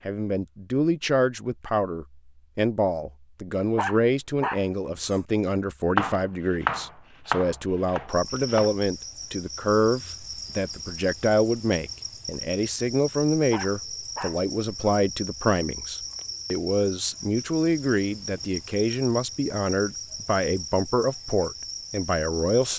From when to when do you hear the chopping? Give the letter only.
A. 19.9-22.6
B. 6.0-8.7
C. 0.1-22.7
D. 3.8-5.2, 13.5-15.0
B.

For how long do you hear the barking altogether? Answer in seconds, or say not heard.
3 s.